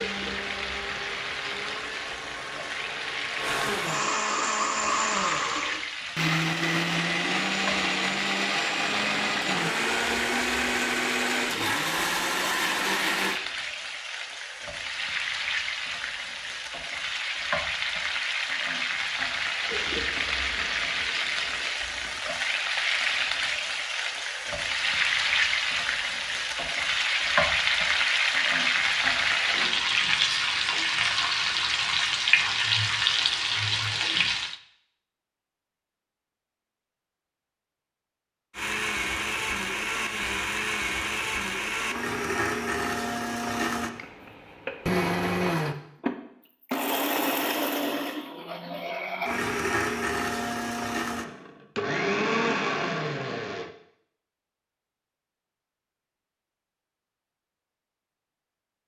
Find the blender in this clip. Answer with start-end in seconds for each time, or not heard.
0.0-13.4, 38.5-53.7.